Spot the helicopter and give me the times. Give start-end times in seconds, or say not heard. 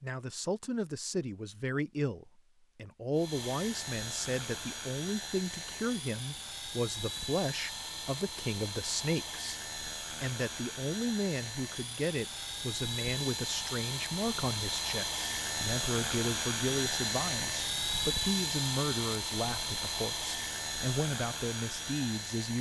3.1-22.5.